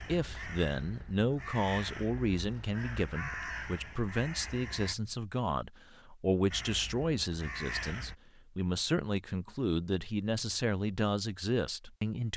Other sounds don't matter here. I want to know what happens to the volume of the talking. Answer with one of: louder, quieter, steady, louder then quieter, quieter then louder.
steady.